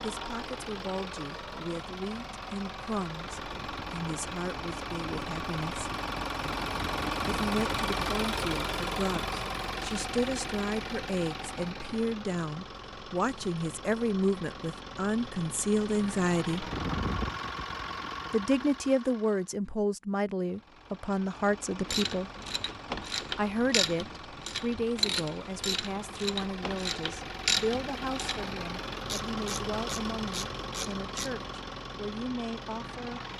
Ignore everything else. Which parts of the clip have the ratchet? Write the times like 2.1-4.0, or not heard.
21.9-31.3.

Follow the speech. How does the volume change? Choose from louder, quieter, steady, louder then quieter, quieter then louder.
louder then quieter.